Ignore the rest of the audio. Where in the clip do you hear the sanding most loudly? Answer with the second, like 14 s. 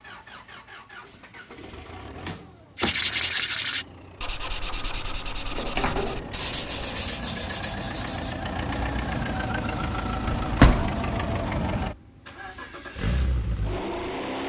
3 s.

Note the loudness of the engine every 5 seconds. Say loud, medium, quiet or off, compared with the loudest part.
quiet, loud, loud.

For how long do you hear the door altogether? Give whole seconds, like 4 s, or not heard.
3 s.